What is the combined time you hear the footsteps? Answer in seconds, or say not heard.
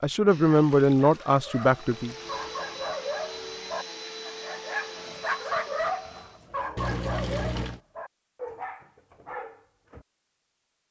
not heard.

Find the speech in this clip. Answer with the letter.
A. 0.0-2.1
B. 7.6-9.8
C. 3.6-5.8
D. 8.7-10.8
A.